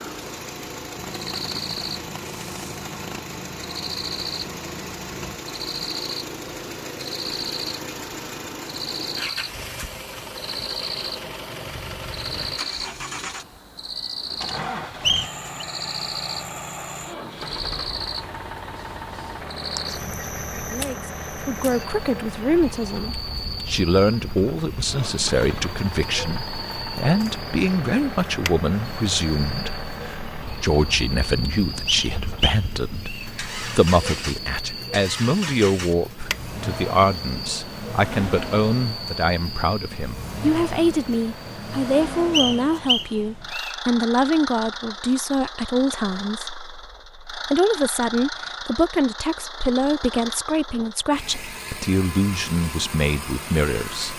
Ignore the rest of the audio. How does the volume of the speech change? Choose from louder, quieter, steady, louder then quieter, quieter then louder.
steady.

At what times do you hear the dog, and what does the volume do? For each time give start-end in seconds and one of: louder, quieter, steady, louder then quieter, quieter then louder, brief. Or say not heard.
not heard.